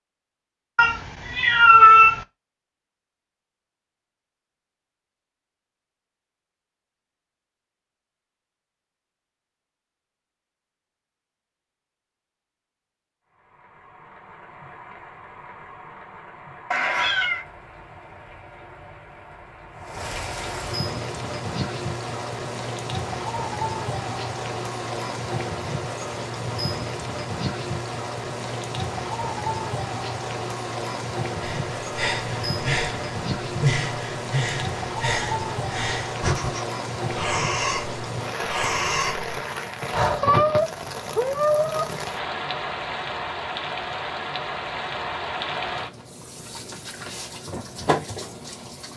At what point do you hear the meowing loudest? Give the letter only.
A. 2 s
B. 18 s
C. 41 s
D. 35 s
A.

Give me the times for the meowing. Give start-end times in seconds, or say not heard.
0.8-2.2, 16.7-17.4, 40.2-41.9.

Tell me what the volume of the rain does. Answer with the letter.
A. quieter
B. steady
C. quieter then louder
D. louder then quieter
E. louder
E.